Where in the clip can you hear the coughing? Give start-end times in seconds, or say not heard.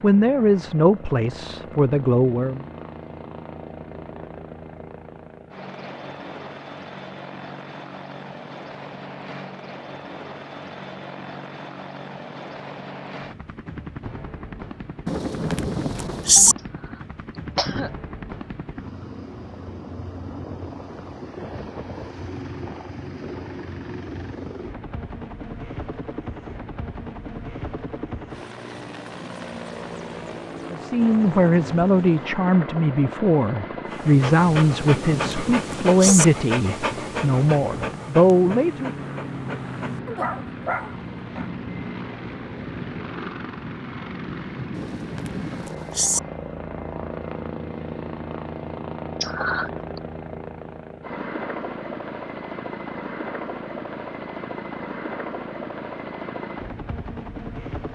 16.6-17.9, 49.2-50.0.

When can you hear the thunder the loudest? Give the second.
16 s.